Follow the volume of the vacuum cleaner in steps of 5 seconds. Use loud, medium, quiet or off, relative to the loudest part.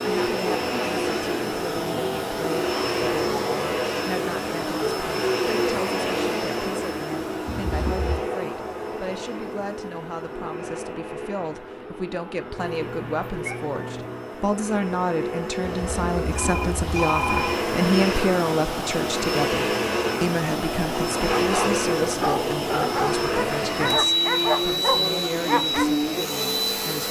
loud, loud, medium, loud, loud, loud.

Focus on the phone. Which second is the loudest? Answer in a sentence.
The loudest moment of the phone is at 17 seconds.